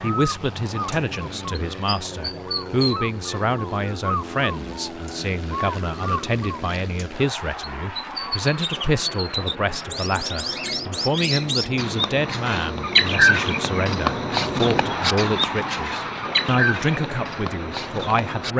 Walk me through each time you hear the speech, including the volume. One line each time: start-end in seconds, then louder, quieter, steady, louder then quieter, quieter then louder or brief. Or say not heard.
0.0-18.5 steady.